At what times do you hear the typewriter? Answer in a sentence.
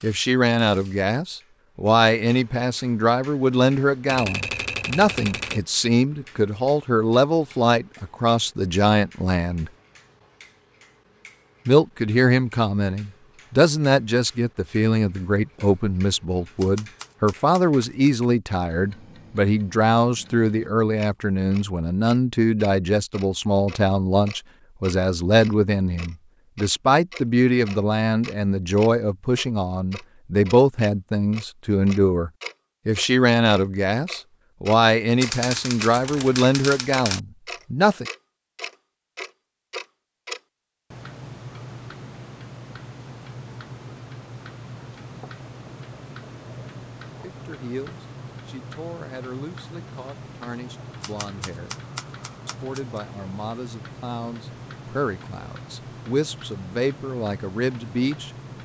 The typewriter can be heard from 4.0 to 5.7 s, from 16.6 to 18.1 s, from 35.2 to 37.2 s and from 51.0 to 53.0 s.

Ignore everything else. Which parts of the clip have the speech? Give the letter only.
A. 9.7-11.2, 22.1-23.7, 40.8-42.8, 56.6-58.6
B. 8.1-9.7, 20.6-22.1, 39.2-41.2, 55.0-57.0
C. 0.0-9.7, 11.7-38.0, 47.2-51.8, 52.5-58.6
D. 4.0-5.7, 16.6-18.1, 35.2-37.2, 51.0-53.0
C.